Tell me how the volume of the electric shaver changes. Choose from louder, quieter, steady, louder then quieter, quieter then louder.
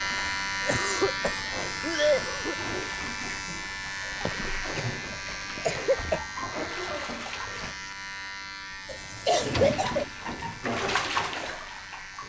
quieter.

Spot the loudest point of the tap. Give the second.
11 s.